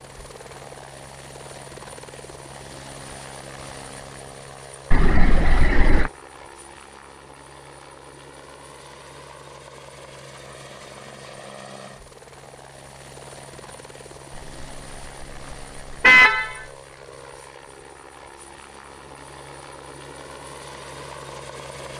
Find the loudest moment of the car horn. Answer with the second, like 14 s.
16 s.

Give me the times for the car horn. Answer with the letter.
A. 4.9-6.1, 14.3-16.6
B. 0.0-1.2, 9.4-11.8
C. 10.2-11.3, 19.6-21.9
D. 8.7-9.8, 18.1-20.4
A.